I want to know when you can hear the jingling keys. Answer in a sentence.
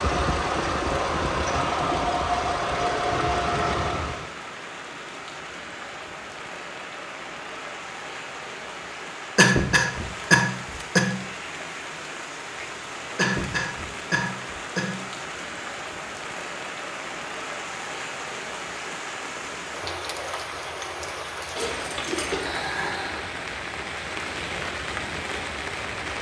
The jingling keys can be heard from 21.6 to 22.9 s.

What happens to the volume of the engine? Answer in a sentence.
The loudness of the engine stays about the same.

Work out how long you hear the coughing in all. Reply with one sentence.
The coughing can be heard for 4 seconds in total.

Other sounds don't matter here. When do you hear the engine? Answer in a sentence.
You can hear the engine from 0.0 to 4.3 s.